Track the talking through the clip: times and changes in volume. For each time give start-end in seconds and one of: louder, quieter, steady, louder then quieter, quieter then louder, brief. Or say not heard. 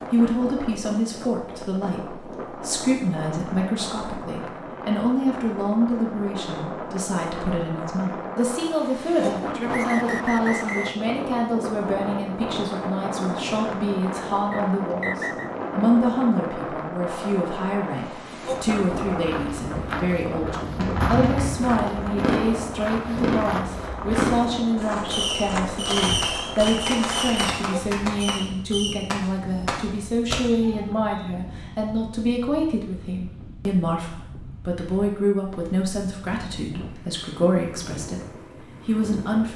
0.1-39.5 steady.